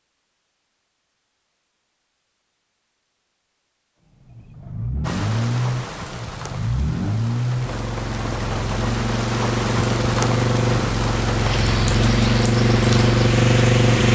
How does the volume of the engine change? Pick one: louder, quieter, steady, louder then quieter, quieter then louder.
louder.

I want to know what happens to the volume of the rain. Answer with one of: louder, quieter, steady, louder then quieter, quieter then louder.
louder.